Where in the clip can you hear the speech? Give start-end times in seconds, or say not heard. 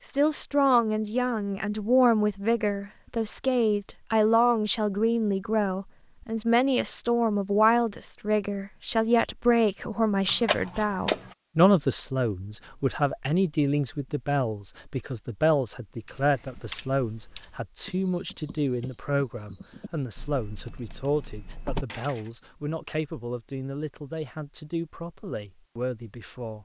0.0-26.5.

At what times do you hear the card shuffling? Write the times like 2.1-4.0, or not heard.
10.2-11.3.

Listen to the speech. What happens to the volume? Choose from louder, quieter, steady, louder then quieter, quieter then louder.
quieter.